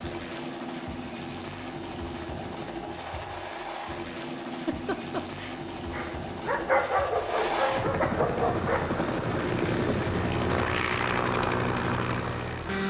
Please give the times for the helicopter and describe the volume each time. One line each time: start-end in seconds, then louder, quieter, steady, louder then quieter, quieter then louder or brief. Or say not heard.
0.0-12.8 louder.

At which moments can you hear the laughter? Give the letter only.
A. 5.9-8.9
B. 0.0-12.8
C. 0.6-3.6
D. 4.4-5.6
D.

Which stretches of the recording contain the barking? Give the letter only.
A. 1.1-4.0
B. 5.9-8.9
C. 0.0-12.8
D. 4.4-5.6
B.